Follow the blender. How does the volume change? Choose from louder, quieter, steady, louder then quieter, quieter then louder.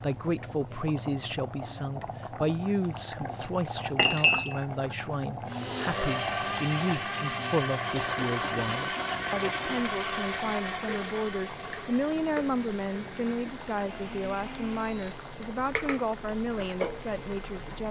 quieter.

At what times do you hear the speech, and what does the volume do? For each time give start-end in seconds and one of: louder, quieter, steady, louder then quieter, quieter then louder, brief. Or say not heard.
0.0-17.8 steady.